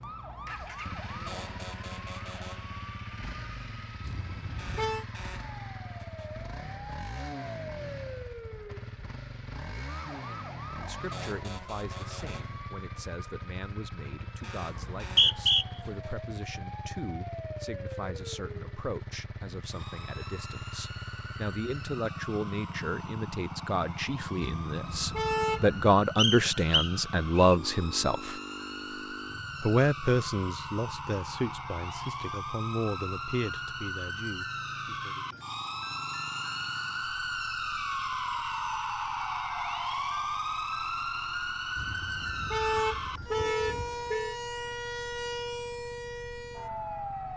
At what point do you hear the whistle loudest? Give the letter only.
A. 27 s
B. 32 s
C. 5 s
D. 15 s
D.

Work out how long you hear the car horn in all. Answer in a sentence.
The car horn can be heard for 5 seconds in total.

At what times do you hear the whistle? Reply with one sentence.
You can hear the whistle from 14.8 to 15.7 s and from 26.1 to 27.6 s.